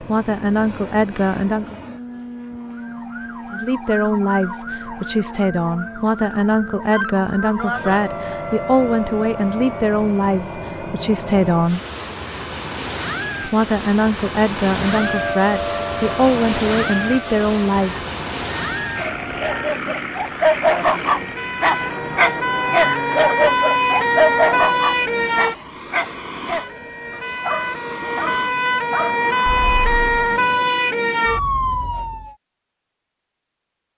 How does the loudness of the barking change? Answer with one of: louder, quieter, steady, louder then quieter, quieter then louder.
quieter.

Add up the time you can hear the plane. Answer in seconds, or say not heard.
31 s.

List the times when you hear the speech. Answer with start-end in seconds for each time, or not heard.
0.0-1.8, 3.5-11.8, 13.4-17.9.